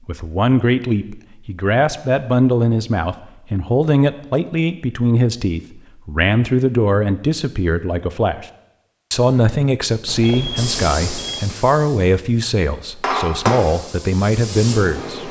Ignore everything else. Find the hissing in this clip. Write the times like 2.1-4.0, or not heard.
10.6-15.2.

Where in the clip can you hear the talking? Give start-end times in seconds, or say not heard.
0.1-8.4, 9.1-15.2.